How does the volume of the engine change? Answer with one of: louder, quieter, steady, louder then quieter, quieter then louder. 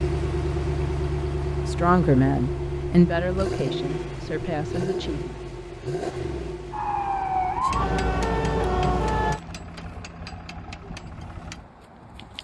quieter.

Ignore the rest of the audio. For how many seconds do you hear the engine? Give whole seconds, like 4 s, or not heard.
12 s.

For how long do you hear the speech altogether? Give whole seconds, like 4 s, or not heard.
4 s.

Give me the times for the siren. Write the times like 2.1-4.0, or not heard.
6.7-9.4.